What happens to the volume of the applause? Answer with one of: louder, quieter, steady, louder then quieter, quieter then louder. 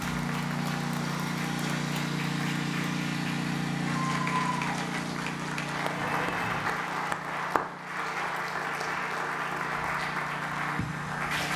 louder.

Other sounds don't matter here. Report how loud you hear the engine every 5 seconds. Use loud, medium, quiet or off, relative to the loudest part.
loud, medium, medium.